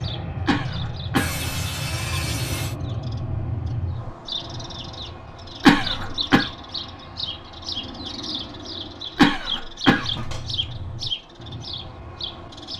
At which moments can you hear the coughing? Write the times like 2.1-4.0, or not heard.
0.5-1.4, 5.6-6.5, 9.2-10.8.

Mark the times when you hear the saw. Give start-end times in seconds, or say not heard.
1.1-2.8.